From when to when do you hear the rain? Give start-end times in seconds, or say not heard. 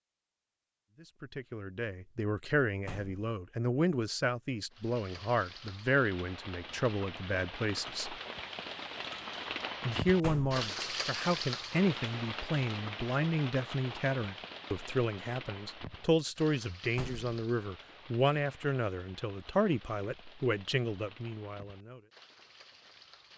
4.7-23.3.